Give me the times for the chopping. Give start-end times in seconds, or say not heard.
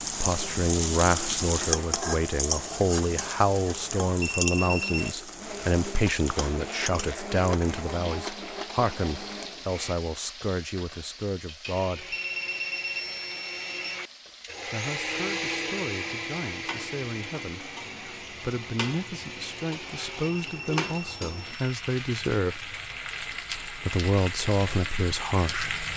not heard.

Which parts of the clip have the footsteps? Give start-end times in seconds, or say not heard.
not heard.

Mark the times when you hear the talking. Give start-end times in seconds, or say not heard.
0.0-12.2, 14.7-22.6, 23.6-25.9.